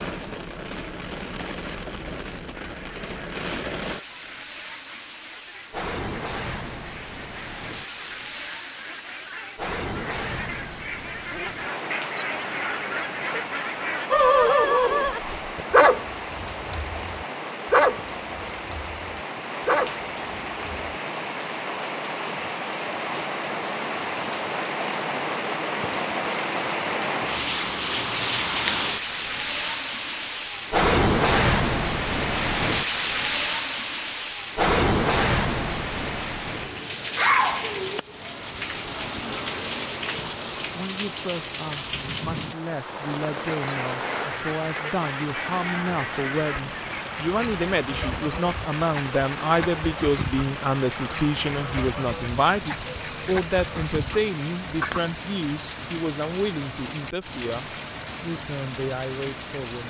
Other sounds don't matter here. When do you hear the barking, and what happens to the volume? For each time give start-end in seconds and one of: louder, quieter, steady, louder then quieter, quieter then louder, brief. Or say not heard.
14.1-20.9 quieter then louder.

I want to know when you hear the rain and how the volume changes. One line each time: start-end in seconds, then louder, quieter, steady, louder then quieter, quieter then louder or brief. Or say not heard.
0.0-59.8 louder then quieter.